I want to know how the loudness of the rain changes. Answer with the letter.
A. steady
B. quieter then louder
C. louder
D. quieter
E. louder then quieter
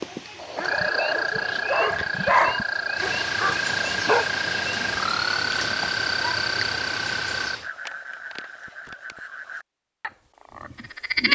C.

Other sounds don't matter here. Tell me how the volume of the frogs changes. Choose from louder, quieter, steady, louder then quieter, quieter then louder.
quieter.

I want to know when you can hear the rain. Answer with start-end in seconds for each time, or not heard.
0.0-7.7.